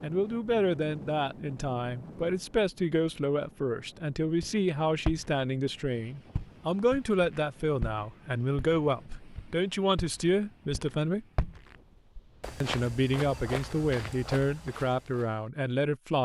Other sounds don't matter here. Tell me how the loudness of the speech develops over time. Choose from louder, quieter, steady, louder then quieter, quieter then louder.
steady.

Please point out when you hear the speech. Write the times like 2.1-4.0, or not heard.
0.0-11.2, 12.6-16.2.